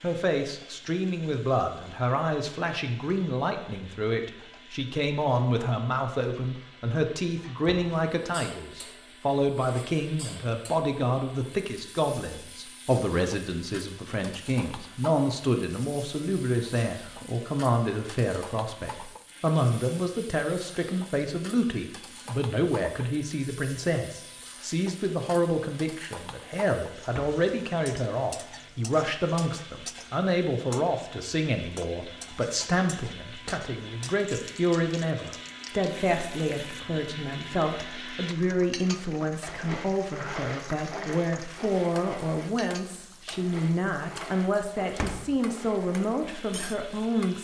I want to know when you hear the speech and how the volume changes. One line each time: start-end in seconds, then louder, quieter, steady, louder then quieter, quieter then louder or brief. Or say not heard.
0.0-47.3 steady.